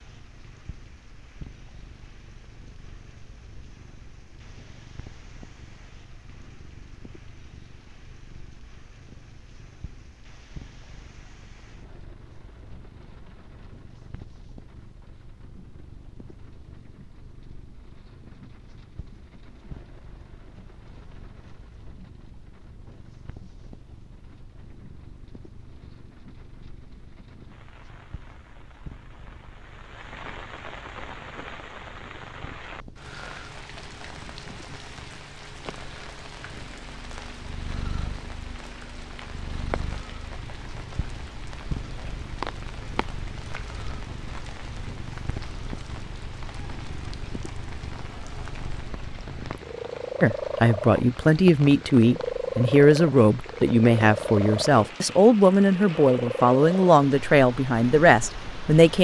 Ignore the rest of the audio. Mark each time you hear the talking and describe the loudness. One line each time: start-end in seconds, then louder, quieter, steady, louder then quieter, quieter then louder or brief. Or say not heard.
50.2-58.9 steady.